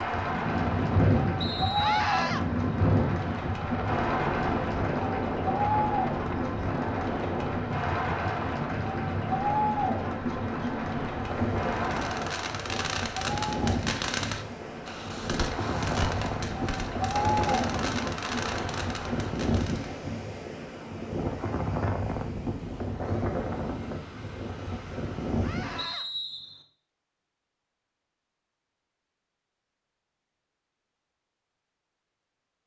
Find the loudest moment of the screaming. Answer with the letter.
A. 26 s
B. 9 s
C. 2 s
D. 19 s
C.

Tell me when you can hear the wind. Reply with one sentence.
The wind can be heard from 0.0 to 25.9 s.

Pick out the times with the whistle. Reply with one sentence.
The whistle can be heard from 1.4 to 2.0 s and from 25.8 to 26.6 s.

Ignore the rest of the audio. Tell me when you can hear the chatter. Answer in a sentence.
The chatter can be heard from 0.0 to 19.4 s.